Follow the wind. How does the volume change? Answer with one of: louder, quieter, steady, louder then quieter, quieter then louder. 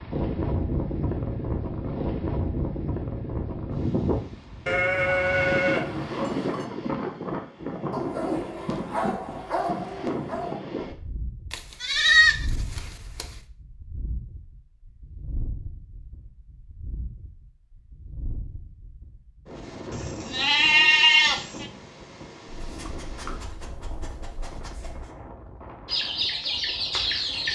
quieter.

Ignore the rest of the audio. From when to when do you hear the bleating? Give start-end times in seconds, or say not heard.
4.7-6.7, 11.5-13.2, 19.9-21.6.